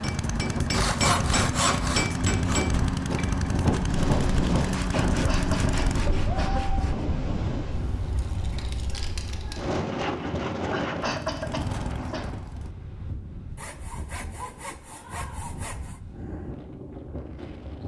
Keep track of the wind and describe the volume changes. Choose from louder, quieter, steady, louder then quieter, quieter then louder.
quieter.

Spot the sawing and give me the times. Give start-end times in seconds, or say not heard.
0.7-2.6, 4.6-7.0, 9.7-11.2, 13.6-16.0.